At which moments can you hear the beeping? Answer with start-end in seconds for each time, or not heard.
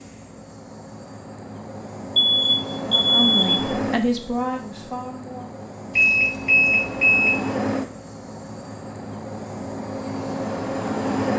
2.1-3.6, 6.0-7.3.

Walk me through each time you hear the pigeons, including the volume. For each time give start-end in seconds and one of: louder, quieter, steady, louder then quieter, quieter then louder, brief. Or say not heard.
not heard.